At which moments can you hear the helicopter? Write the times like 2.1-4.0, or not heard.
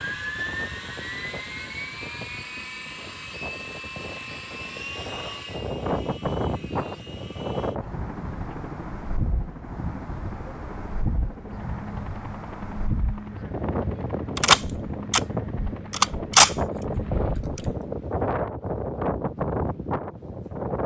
0.0-17.4.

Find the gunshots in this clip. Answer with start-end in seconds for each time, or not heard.
14.3-17.8.